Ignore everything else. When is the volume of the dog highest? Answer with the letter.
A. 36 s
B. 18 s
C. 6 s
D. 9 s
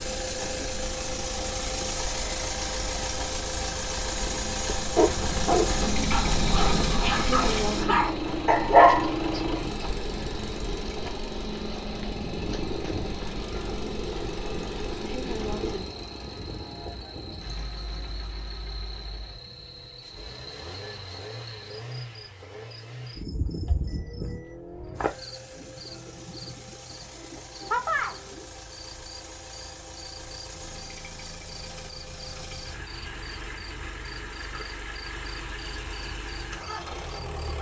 D.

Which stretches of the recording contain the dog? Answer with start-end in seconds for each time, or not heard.
5.0-9.9.